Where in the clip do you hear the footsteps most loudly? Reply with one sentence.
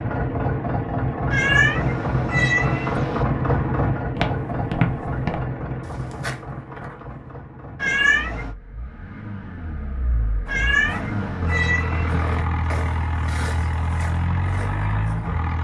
The volume of the footsteps peaks at 5 seconds.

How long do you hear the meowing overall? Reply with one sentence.
You can hear the meowing for 5 seconds altogether.